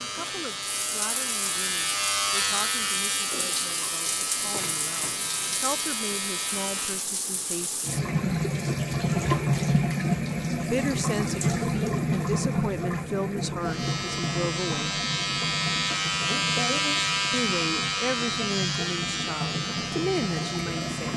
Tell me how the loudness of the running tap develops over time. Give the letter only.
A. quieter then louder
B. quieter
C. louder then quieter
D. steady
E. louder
C.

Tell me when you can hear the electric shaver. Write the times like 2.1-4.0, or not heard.
0.0-7.1, 13.6-21.1.